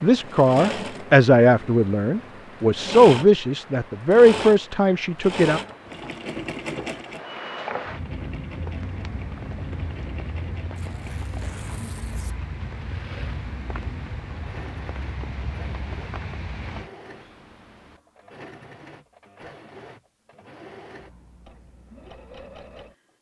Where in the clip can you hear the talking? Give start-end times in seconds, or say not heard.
0.0-5.6.